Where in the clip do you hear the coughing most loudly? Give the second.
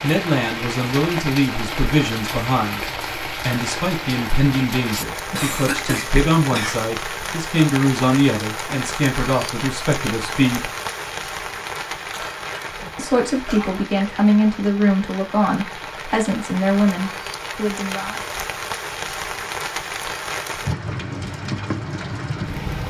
6 s.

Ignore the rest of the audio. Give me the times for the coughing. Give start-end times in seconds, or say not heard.
5.3-6.8, 12.1-13.8.